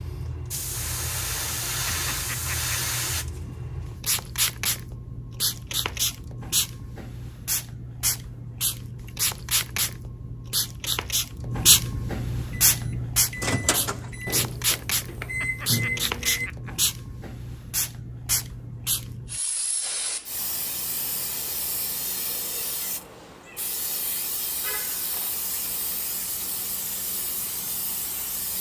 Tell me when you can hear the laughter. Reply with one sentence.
You can hear the laughter from 1.9 to 2.8 s and from 15.4 to 16.8 s.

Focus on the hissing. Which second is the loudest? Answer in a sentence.
The loudest moment of the hissing is at 12 seconds.